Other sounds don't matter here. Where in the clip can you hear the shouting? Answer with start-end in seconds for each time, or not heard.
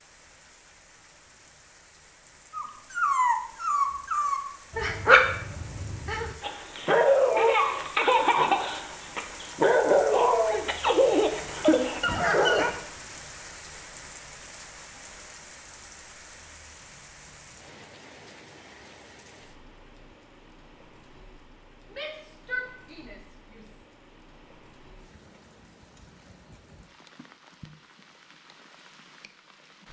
21.9-23.8.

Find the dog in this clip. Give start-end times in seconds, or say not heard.
2.5-12.8.